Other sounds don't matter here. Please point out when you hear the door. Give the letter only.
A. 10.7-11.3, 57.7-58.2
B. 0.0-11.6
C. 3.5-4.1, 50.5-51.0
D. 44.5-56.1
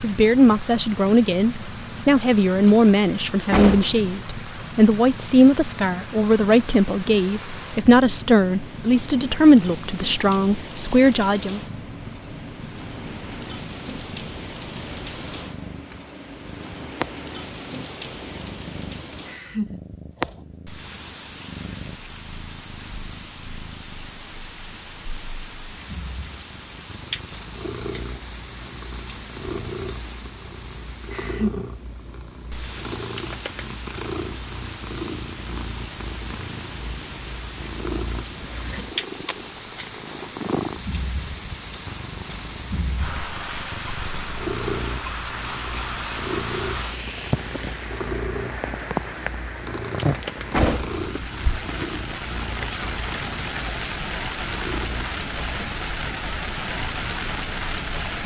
C.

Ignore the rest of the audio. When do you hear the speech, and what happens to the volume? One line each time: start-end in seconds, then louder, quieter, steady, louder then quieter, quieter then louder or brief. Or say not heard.
0.0-11.6 steady.